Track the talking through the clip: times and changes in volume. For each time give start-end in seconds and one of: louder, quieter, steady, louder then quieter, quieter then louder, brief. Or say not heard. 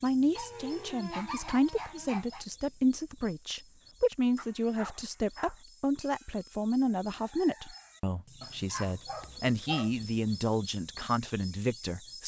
0.0-12.2 steady.